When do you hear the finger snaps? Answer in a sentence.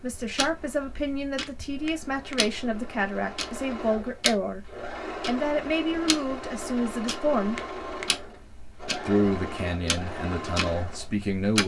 You can hear the finger snaps from 1.4 to 2.4 s and from 7.5 to 8.1 s.